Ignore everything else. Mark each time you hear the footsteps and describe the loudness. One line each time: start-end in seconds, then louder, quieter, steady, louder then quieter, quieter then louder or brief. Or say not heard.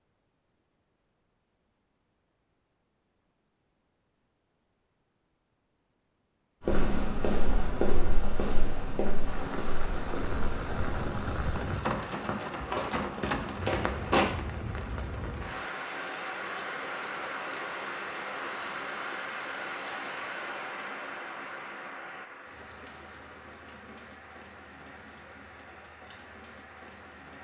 6.7-14.2 quieter then louder.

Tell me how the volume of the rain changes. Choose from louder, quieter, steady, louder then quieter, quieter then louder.
quieter.